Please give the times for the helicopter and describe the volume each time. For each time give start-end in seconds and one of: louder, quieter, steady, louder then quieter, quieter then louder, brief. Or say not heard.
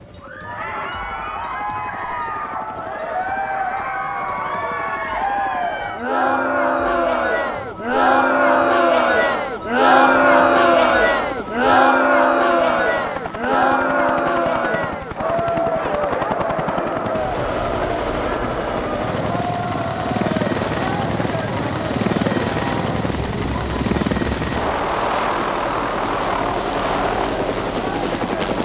0.0-28.5 louder.